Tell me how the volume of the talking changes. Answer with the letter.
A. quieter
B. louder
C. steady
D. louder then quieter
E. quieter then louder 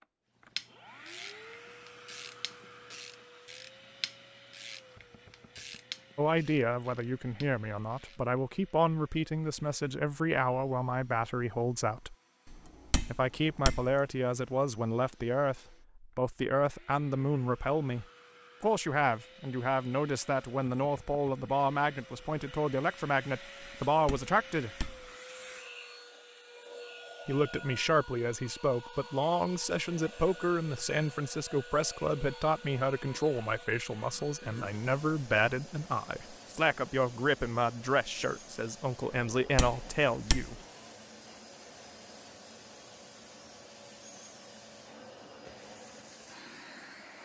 C.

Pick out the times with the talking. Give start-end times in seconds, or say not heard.
6.2-12.2, 13.1-24.7, 27.2-40.5.